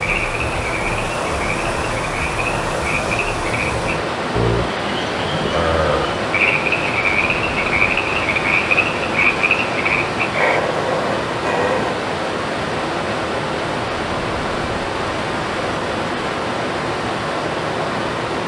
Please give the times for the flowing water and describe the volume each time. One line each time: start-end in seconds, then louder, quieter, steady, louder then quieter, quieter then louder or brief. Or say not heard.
0.0-18.4 steady.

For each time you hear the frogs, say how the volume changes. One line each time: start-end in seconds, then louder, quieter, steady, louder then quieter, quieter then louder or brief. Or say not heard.
0.0-10.6 louder.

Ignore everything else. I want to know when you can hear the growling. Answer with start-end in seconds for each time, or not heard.
10.3-11.9.